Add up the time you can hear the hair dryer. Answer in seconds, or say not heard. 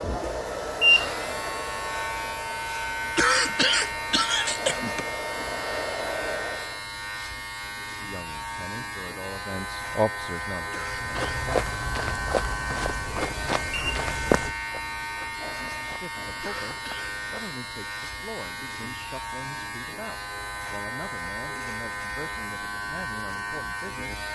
7 s.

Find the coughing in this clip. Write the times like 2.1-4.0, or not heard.
3.1-5.0, 10.7-11.4, 16.4-17.1.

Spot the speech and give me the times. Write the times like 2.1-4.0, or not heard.
8.0-11.6, 15.8-24.2.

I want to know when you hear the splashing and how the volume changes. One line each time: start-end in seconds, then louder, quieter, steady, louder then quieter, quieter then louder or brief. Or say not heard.
not heard.